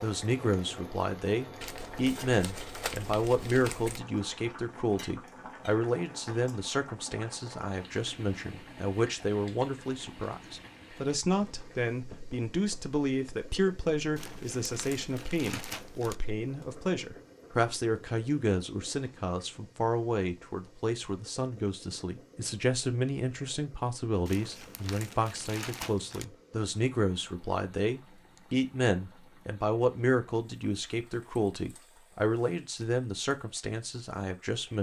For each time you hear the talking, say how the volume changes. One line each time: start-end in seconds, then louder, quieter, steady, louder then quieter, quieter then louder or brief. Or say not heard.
0.0-34.7 steady.